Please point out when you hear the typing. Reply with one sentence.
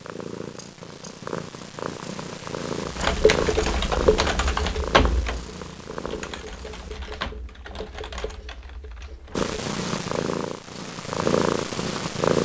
The typing can be heard from 2.9 to 9.6 s.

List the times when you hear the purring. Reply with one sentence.
The purring can be heard from 0.0 to 7.0 s and from 9.3 to 12.4 s.